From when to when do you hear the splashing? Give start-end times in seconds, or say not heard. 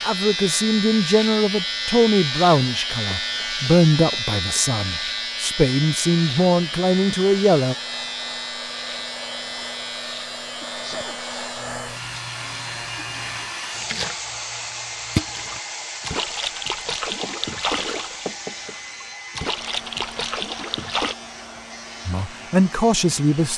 12.9-21.1.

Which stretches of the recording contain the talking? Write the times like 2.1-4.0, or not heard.
0.0-7.8, 22.1-23.5.